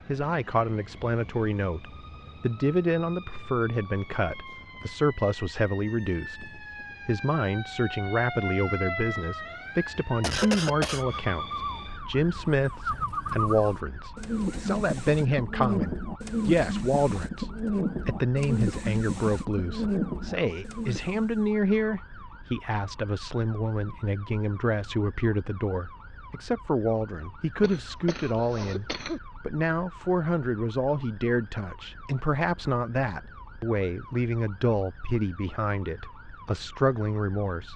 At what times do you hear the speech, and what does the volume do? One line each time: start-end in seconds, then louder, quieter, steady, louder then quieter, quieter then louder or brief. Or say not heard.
0.1-37.7 steady.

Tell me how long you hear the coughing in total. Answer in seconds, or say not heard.
3 s.